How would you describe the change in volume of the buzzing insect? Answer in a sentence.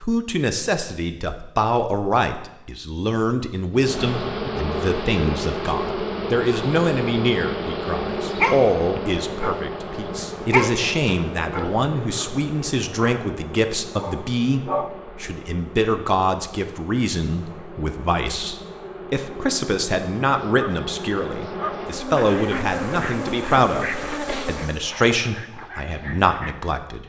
The volume of the buzzing insect goes down, then up.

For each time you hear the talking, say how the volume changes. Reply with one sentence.
The talking can be heard from 0.0 to 27.0 s, at a steady volume.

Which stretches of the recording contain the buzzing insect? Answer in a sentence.
You can hear the buzzing insect from 3.8 to 24.9 s.